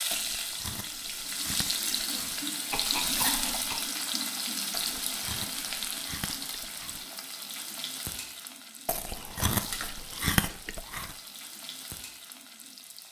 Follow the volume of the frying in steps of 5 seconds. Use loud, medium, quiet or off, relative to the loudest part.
loud, medium, quiet.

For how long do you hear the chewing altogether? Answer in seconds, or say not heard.
7 s.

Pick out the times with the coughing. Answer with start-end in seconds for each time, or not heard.
2.7-4.0.